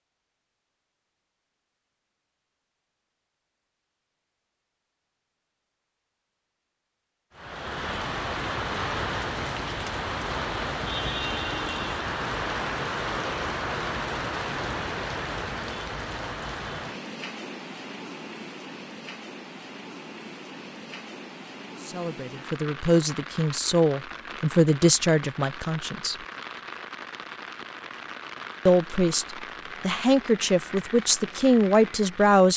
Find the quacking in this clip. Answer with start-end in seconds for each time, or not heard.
not heard.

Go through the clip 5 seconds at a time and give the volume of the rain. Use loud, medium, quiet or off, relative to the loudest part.
off, loud, loud, medium, medium, medium, medium.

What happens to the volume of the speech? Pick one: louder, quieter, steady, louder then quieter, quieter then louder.
louder.